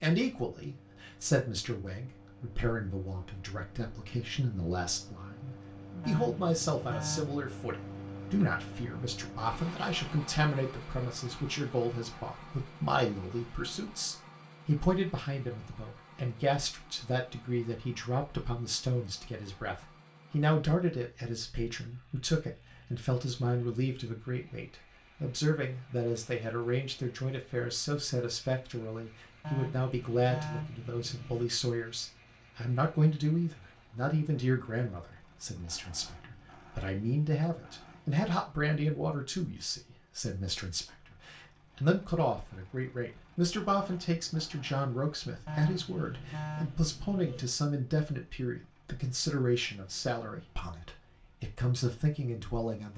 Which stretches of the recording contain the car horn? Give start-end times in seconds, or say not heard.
6.0-7.4, 29.4-31.4, 45.5-47.5.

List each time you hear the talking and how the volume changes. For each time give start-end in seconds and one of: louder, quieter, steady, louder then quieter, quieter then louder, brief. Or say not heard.
0.0-52.9 steady.